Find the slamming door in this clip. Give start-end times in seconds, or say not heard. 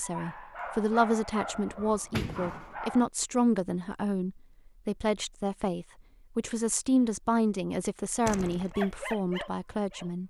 1.6-2.8, 8.2-8.8.